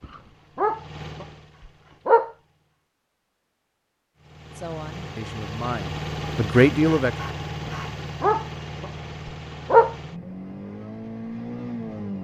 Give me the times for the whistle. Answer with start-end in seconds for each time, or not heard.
not heard.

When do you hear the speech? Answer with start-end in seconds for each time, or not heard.
4.5-7.2.